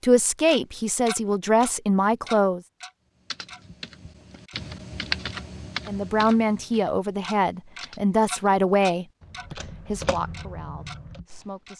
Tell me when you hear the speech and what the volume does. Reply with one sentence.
The speech can be heard briefly from 0.0 to 2.6 s; and from 5.8 to 11.7 s, getting quieter.